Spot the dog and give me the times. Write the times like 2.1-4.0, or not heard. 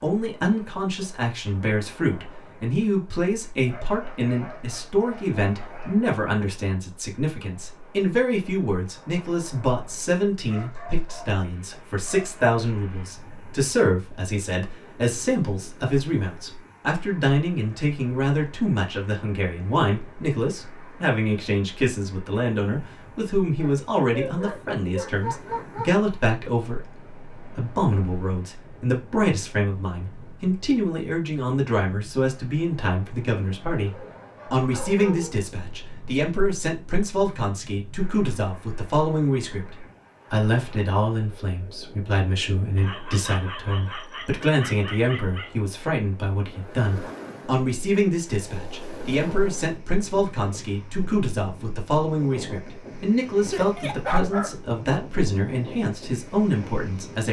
3.6-6.0, 10.4-12.4, 23.6-25.9, 33.9-35.4, 42.8-45.5, 53.5-54.5.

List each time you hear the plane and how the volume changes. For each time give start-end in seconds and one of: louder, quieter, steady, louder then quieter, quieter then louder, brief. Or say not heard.
not heard.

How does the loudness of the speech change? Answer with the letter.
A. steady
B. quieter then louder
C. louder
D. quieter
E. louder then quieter
A.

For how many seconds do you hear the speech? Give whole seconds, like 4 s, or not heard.
57 s.